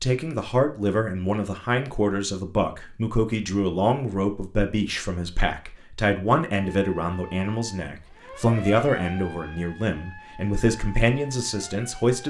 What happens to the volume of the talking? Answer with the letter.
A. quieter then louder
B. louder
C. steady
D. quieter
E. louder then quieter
C.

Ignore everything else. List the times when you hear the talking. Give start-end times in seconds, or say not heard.
0.0-12.2.